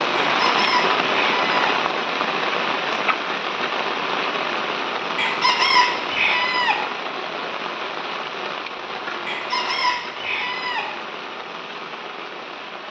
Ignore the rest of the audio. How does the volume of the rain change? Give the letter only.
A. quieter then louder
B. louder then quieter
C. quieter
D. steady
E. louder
C.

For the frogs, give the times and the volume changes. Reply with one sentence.
You can't hear the frogs here.